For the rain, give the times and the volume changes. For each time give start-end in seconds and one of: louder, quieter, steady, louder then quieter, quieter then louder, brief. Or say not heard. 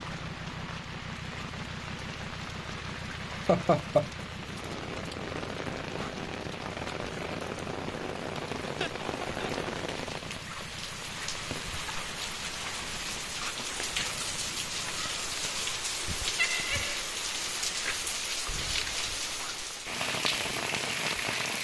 0.0-21.5 louder.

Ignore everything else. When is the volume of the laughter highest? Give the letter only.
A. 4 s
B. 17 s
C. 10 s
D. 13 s
A.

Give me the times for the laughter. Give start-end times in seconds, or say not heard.
3.3-4.0, 8.6-9.7, 16.4-17.1.